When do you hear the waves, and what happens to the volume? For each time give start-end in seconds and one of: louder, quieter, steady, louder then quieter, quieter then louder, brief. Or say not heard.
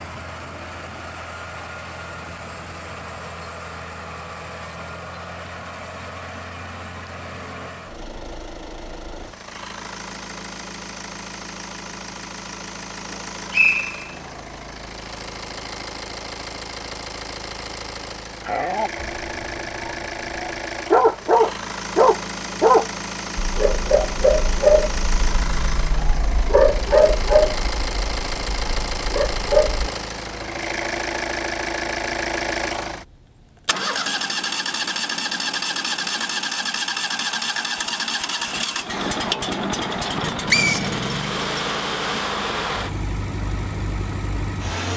not heard.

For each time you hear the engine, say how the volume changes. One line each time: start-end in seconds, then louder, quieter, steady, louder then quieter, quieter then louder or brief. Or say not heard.
0.0-44.9 louder.